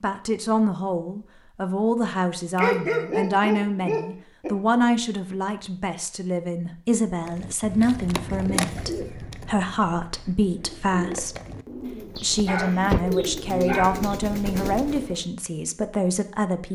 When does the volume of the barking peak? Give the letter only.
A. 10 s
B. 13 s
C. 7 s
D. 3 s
D.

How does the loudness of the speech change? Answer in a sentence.
The loudness of the speech stays about the same.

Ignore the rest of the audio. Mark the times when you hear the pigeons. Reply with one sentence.
The pigeons can be heard from 7.2 to 15.2 s.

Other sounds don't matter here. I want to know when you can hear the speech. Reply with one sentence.
You can hear the speech from 0.0 to 11.4 s and from 12.2 to 16.7 s.